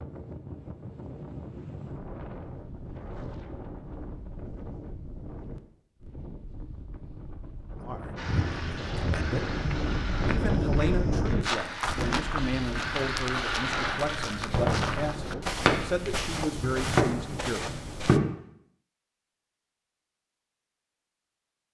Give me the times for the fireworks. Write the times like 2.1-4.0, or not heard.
8.2-18.2.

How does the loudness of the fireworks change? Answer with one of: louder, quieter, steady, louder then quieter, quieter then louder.
louder.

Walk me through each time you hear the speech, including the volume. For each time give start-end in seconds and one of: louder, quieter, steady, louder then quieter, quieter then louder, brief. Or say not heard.
7.8-9.6 brief
10.2-17.7 steady.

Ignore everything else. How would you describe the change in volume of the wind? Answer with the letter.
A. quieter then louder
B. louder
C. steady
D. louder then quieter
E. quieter
D.